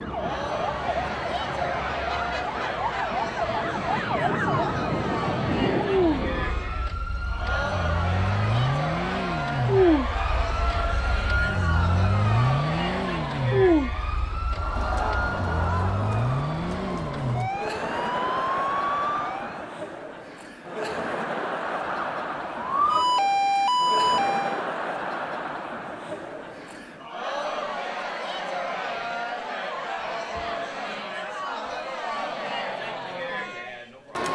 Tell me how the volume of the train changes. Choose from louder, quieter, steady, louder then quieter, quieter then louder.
louder.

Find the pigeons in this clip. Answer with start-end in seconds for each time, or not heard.
not heard.